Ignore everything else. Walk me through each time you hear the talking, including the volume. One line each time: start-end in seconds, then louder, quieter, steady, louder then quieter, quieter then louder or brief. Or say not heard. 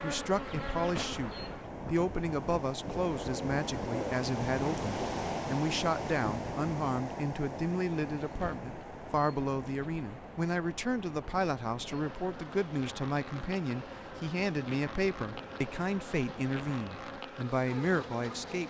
0.0-18.6 steady.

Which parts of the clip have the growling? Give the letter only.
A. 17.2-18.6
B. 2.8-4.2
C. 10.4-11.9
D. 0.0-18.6
B.